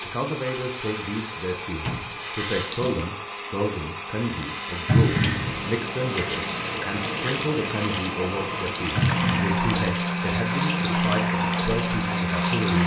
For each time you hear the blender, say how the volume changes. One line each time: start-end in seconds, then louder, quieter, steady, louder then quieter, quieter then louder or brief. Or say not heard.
0.0-12.8 steady.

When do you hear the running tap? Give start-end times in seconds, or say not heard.
0.0-12.8.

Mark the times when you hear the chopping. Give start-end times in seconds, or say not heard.
not heard.